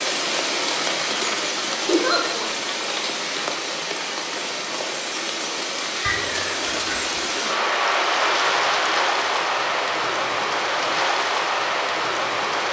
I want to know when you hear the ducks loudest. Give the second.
6 s.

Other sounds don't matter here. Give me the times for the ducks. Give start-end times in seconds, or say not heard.
6.0-7.6.